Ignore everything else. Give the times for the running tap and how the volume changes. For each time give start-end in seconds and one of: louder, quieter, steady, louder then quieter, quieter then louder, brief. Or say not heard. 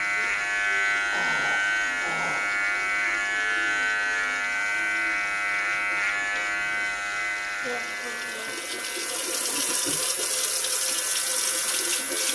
0.0-12.3 louder.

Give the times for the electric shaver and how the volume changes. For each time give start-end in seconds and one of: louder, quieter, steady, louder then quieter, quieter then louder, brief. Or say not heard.
0.0-12.3 quieter.